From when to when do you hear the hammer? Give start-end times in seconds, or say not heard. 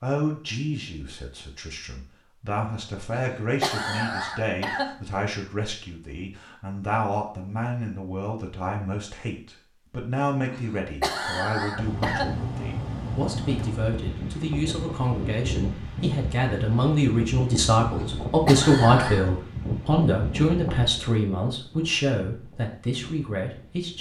not heard.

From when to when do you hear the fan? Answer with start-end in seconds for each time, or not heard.
11.7-23.9.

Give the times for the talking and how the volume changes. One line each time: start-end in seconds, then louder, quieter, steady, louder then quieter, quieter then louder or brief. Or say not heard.
0.0-23.9 louder.